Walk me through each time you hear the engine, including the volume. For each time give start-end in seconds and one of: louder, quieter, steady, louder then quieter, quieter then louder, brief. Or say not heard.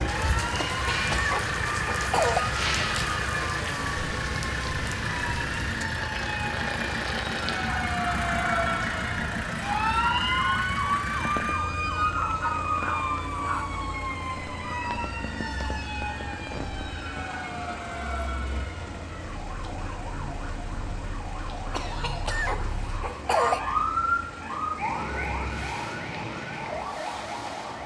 0.0-27.8 quieter.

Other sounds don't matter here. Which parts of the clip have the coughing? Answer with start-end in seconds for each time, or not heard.
0.6-2.5, 21.7-23.6.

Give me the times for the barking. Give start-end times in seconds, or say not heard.
12.2-13.8.